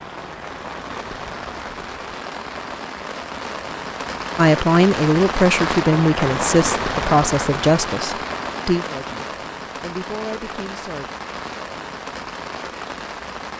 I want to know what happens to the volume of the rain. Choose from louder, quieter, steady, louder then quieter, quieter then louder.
louder then quieter.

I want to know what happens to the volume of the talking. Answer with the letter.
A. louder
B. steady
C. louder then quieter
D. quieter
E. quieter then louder
D.